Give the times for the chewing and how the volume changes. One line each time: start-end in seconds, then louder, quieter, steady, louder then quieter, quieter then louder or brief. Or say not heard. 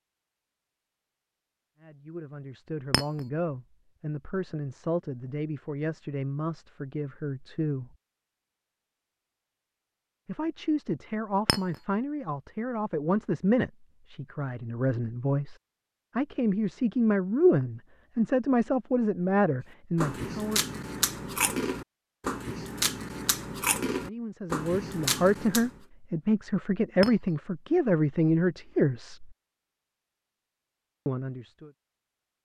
19.9-25.8 steady.